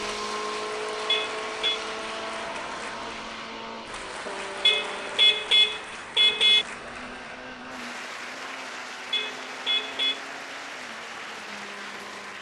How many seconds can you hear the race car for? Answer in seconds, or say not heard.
12 s.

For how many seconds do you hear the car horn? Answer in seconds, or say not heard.
4 s.